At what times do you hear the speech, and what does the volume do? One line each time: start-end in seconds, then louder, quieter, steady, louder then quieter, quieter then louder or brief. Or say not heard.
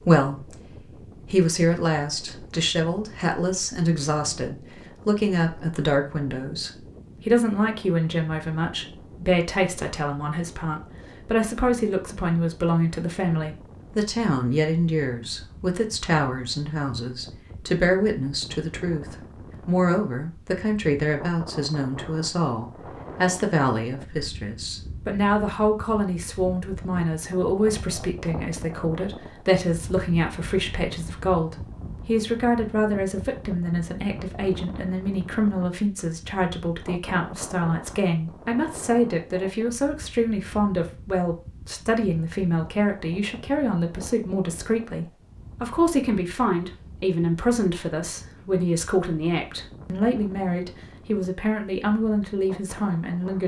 0.0-53.4 steady.